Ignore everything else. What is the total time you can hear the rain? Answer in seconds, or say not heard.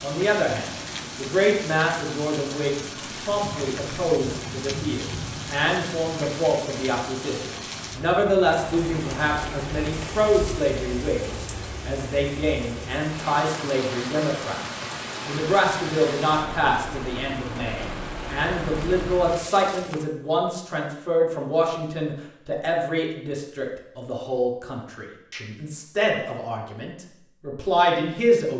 20 s.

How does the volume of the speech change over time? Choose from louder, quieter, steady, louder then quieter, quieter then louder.
steady.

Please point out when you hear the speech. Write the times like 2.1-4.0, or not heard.
0.0-14.6, 15.2-28.5.